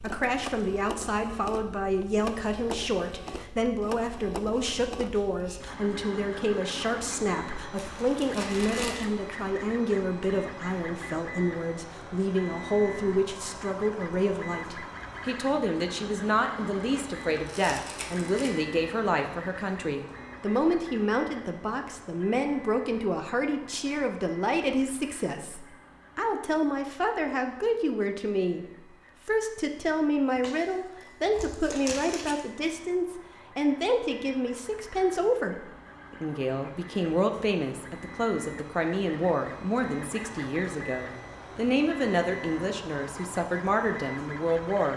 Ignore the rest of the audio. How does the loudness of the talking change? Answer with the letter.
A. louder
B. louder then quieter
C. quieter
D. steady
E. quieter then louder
D.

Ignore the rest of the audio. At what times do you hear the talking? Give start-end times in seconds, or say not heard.
0.0-28.6, 29.2-44.9.